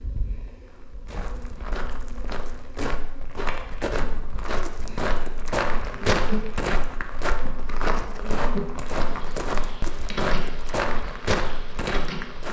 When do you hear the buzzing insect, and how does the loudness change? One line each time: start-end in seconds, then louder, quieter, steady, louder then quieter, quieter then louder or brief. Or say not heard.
0.0-12.4 louder.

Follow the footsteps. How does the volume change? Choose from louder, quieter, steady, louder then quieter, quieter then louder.
louder.